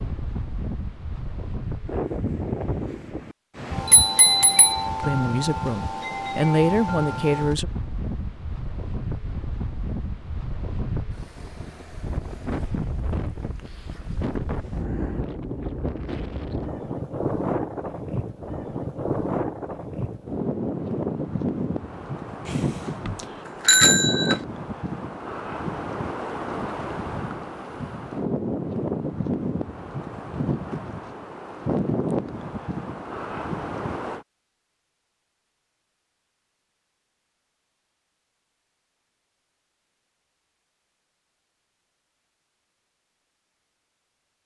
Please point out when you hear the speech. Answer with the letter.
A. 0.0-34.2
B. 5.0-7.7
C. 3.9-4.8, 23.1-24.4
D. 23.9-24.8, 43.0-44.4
B.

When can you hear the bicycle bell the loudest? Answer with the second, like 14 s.
24 s.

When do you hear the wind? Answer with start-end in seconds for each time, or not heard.
0.0-34.2.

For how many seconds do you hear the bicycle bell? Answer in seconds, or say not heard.
2 s.